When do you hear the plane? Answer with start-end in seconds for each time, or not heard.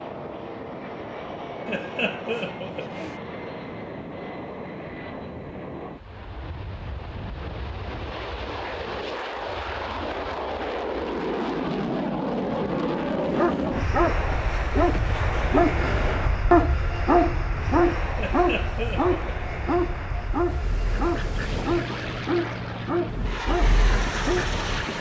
0.0-24.9.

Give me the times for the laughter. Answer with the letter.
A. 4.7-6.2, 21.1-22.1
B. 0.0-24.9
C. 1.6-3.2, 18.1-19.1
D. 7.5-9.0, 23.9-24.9
C.